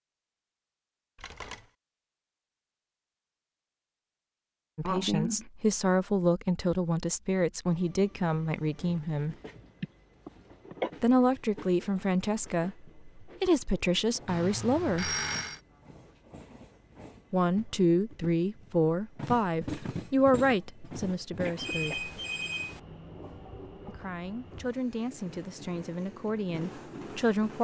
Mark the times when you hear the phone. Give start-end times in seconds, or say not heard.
1.1-1.7, 14.2-15.6, 21.6-22.8.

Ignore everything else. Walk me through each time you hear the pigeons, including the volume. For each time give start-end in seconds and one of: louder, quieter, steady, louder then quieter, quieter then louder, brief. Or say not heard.
not heard.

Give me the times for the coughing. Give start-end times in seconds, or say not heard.
4.8-5.5, 9.8-10.9, 21.4-22.0.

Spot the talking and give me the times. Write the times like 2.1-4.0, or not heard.
4.8-9.3, 11.0-15.2, 17.3-22.1, 23.9-27.5.